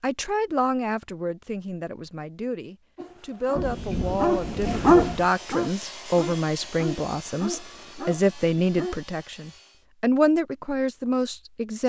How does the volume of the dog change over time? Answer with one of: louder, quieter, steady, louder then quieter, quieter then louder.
louder then quieter.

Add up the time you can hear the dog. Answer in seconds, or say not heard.
6 s.